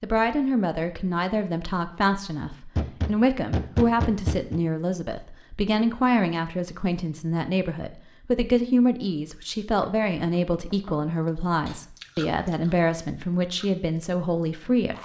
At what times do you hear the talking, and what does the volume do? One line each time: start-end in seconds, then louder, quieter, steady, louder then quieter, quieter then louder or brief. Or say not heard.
0.0-15.0 steady.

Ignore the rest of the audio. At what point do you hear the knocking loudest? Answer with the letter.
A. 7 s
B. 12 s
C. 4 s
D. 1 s
C.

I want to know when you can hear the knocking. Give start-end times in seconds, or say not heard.
2.8-4.6, 9.8-11.1.